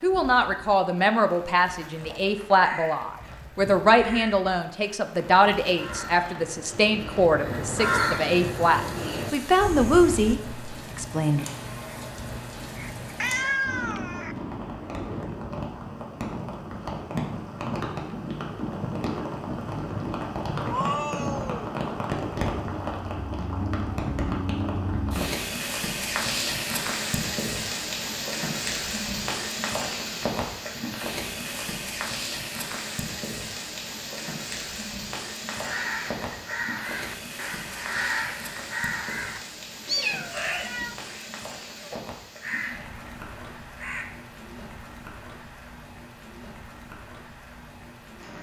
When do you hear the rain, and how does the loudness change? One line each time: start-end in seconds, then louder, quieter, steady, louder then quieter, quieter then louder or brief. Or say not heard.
0.0-48.3 louder then quieter.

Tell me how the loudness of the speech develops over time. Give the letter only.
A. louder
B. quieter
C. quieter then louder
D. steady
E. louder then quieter
D.